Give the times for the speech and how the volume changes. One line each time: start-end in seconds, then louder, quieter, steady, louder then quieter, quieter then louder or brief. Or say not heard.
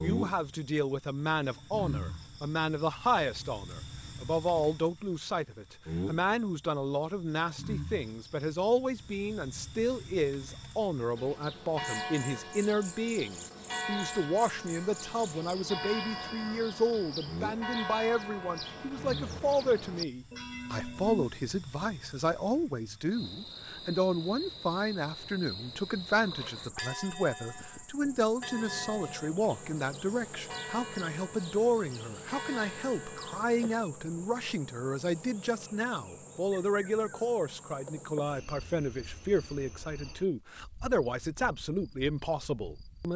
0.0-43.1 steady.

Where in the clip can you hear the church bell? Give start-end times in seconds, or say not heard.
11.2-21.3, 26.1-33.8.